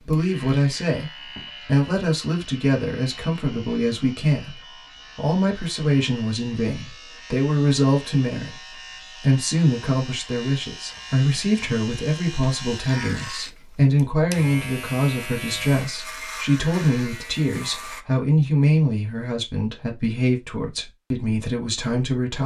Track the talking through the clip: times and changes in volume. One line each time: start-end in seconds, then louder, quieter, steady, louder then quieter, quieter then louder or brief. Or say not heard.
0.0-22.4 steady.